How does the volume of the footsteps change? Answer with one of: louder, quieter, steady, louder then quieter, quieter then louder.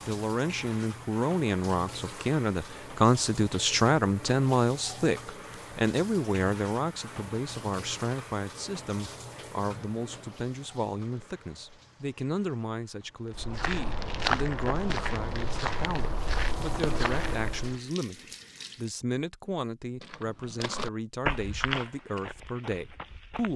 quieter.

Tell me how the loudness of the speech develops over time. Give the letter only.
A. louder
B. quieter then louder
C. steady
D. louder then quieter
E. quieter
E.